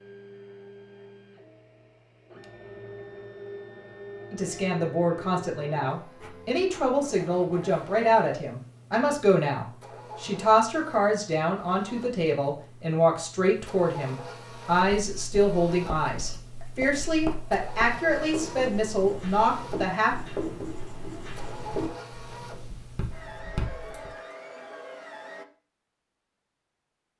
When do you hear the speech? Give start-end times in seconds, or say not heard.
4.3-20.1.